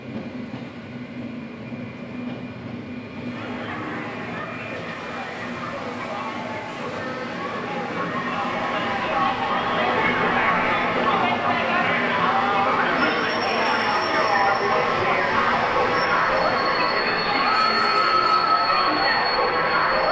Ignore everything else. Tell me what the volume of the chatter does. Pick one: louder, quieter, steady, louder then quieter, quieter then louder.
louder.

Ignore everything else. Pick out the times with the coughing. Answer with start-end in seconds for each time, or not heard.
not heard.